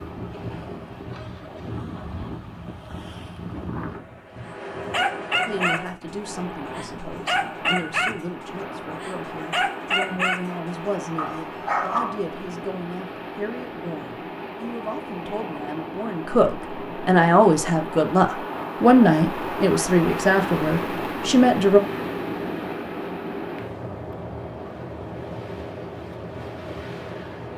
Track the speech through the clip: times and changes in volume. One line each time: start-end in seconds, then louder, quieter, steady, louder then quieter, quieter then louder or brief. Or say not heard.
5.5-21.8 louder.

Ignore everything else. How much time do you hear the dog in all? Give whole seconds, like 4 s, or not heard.
5 s.